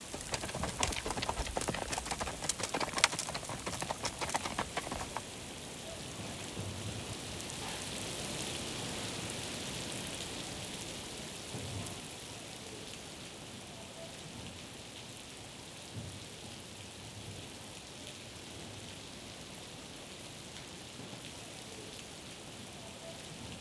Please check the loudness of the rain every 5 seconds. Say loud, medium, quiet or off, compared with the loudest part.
medium, loud, loud, medium, medium.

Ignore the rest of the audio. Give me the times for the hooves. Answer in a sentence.
The hooves can be heard from 0.1 to 5.3 s.